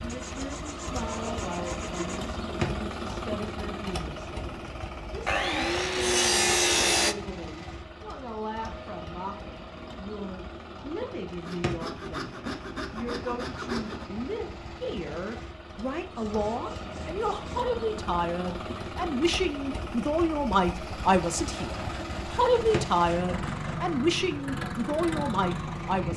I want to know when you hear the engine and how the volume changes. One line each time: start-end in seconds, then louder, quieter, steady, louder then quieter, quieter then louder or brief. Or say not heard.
0.0-26.1 quieter then louder.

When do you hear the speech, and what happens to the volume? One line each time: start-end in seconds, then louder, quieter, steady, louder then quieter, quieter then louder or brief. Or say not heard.
0.0-26.1 louder.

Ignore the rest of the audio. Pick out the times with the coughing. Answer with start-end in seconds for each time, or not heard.
not heard.